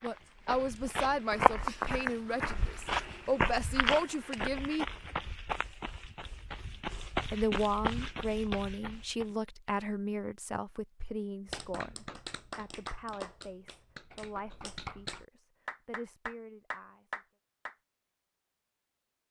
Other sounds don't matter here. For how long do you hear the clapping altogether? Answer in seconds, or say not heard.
6 s.